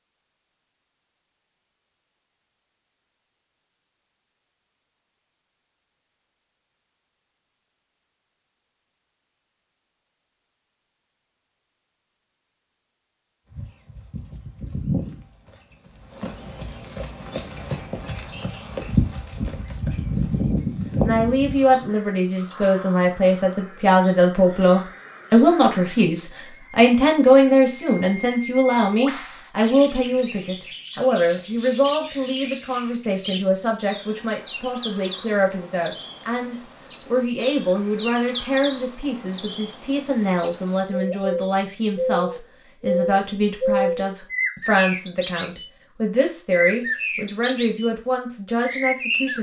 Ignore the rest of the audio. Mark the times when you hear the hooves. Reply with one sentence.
You can hear the hooves from 13.5 to 21.9 s.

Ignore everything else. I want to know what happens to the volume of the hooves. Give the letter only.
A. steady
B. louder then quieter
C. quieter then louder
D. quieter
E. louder
C.